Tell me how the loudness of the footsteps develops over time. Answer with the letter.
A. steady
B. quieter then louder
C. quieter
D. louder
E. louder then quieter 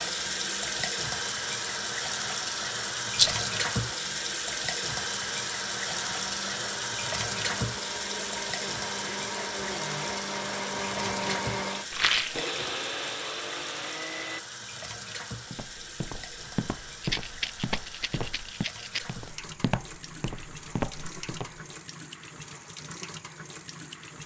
A.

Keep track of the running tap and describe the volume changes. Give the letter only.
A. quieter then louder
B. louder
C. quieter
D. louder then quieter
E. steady
C.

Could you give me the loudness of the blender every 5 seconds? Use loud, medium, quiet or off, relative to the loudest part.
quiet, medium, loud, off, off.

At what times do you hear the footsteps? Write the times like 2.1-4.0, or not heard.
15.5-21.6.